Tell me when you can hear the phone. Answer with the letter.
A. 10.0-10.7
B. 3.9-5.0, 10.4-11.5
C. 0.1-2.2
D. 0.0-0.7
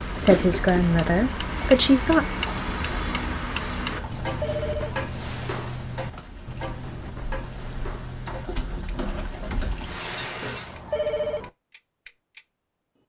B.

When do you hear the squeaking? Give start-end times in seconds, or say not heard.
10.0-10.7.